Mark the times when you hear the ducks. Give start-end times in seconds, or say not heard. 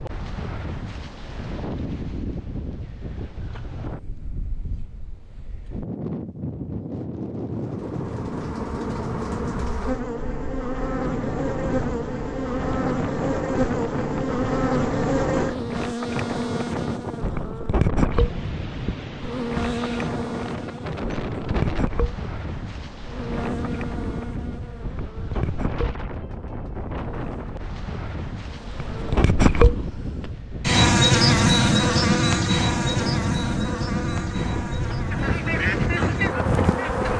35.1-37.1.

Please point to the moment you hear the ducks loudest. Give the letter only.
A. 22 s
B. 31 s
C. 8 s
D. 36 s
D.